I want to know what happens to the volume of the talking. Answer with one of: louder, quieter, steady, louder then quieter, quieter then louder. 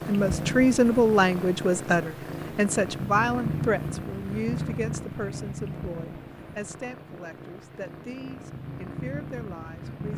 quieter.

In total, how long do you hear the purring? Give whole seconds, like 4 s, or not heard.
10 s.